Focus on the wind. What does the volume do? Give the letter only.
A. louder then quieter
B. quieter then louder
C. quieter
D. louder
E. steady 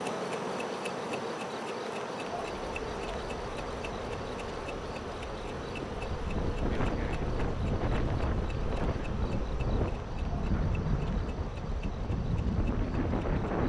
D.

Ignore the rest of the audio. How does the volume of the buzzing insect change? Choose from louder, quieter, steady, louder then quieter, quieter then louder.
quieter.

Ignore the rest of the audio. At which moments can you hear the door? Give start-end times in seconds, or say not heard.
not heard.